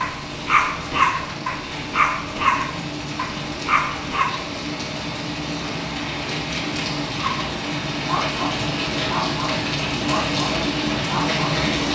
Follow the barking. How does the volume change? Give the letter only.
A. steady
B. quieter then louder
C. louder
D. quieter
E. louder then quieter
D.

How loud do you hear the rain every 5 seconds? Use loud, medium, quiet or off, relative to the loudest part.
medium, loud, loud.